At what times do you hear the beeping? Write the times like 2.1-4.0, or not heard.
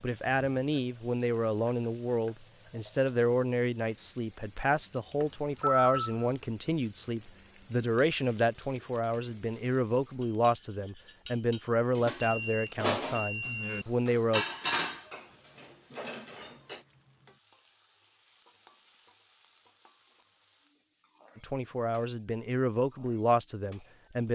5.2-6.2, 12.2-13.8.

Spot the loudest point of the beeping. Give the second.
6 s.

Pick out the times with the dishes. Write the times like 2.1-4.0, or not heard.
10.2-16.8.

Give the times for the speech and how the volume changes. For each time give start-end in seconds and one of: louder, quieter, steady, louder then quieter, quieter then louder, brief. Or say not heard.
0.0-14.4 steady
21.4-24.2 brief.